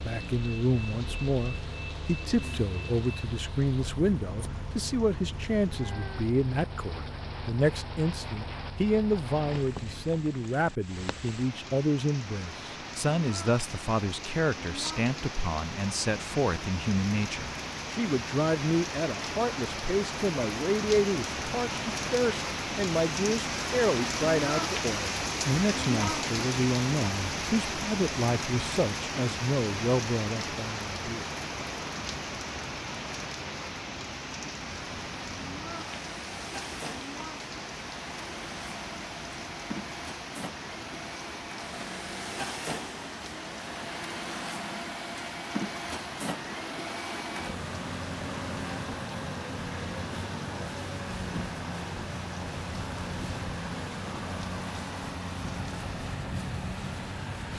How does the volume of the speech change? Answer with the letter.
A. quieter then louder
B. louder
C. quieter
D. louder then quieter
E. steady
E.